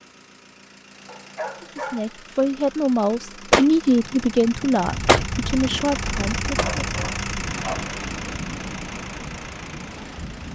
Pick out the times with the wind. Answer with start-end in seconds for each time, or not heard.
4.8-10.4.